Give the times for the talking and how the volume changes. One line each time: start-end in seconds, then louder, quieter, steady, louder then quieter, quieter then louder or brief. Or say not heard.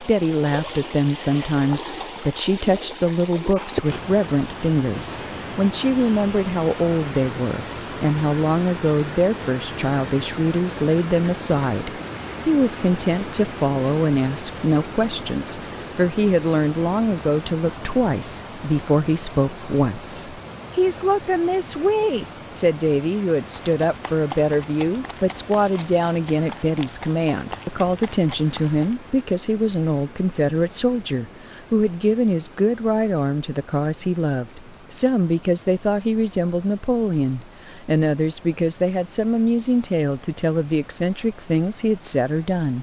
0.0-42.7 steady.